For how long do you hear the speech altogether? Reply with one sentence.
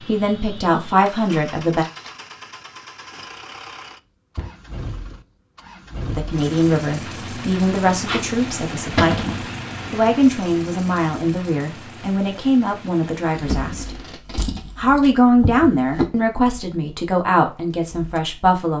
You can hear the speech for 14 seconds altogether.